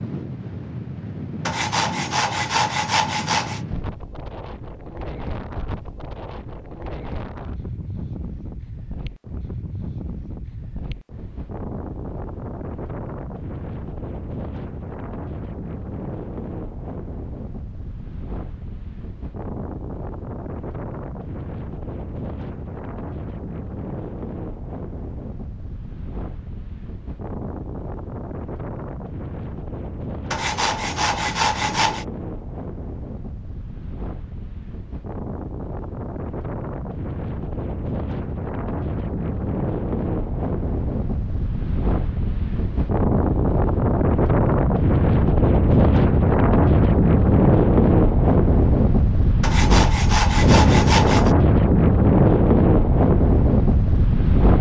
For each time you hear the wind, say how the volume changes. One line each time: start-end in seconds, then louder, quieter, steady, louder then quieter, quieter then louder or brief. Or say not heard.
0.0-54.5 louder.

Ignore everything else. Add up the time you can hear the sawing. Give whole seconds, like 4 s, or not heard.
6 s.